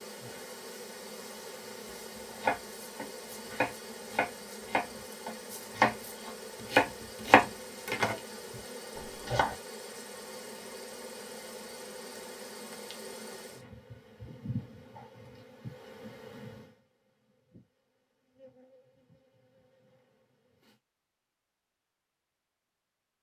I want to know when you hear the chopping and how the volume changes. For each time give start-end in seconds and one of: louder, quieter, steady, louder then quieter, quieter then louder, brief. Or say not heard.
2.3-8.2 louder
8.9-9.6 brief.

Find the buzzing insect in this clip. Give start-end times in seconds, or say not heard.
0.0-20.8.